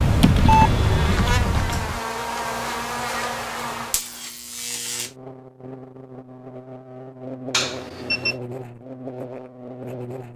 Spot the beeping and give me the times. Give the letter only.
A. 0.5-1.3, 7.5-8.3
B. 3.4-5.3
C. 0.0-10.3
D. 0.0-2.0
A.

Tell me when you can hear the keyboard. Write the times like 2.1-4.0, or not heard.
0.0-2.0.